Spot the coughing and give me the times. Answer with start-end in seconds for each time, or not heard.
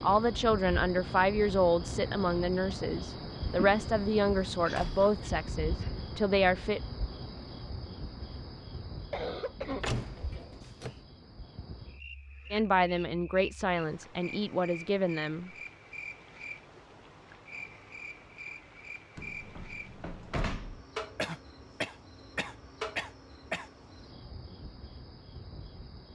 4.6-6.0, 9.1-10.7, 21.1-23.6.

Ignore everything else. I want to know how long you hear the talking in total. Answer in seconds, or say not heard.
10 s.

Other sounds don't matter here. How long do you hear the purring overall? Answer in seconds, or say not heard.
not heard.